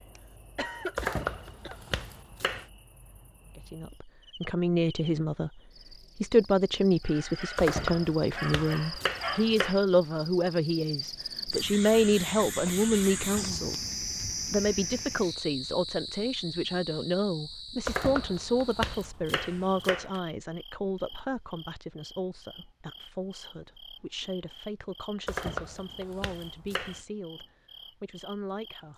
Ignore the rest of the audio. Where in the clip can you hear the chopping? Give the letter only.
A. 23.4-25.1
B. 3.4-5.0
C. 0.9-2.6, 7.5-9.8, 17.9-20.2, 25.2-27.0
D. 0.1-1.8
C.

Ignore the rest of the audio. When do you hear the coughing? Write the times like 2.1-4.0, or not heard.
0.1-1.8.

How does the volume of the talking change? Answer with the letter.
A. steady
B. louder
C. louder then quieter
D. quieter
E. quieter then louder
D.